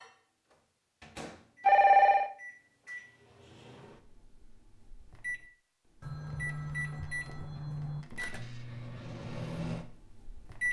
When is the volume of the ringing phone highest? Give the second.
2 s.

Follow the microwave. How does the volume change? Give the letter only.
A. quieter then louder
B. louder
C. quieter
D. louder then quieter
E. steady
B.